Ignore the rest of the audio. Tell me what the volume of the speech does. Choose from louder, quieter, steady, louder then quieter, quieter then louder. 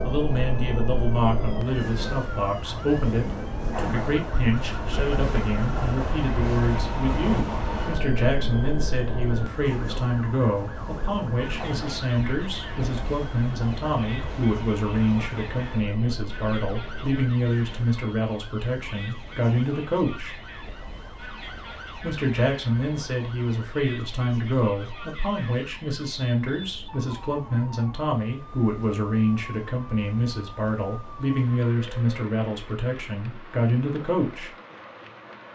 steady.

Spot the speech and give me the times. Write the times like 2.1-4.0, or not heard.
0.0-20.4, 21.9-34.5.